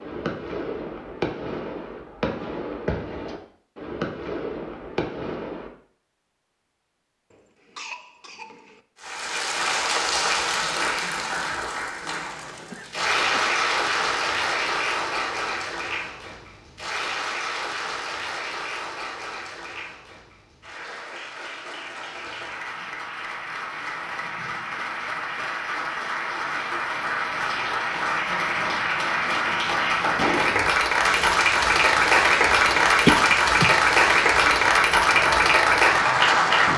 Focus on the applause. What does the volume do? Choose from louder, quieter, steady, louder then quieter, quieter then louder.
quieter then louder.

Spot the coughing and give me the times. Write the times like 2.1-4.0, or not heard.
7.3-8.8, 12.4-13.4, 33.0-33.7.